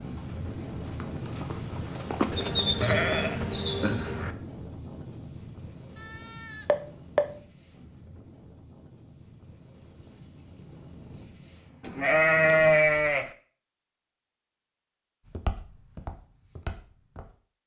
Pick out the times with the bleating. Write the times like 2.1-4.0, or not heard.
2.3-4.3, 6.0-7.2, 11.8-13.3.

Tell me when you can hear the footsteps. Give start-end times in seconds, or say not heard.
0.0-2.5, 15.3-17.3.